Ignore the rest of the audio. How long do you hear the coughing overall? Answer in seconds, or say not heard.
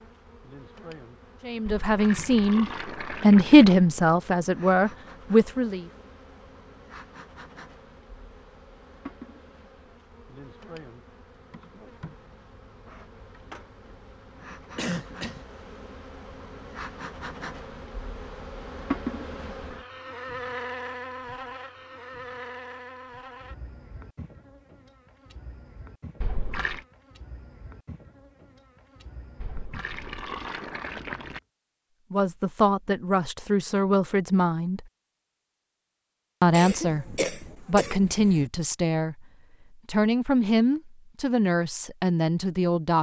3 s.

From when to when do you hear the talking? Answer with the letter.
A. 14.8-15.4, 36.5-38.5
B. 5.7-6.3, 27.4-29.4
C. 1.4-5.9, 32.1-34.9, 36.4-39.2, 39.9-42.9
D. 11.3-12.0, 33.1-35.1
C.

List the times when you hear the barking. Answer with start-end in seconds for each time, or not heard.
not heard.